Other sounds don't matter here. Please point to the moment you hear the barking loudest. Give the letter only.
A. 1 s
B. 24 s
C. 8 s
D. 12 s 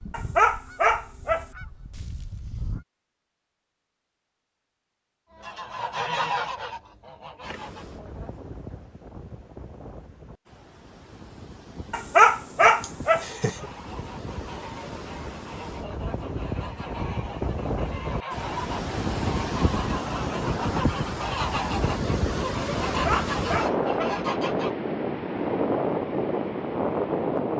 D.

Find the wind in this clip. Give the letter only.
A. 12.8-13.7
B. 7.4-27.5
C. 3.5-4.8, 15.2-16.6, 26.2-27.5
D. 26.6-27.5
B.